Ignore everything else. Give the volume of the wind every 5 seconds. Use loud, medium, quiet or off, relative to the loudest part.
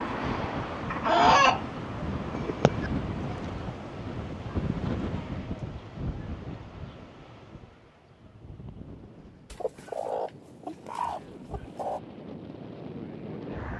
loud, medium, medium.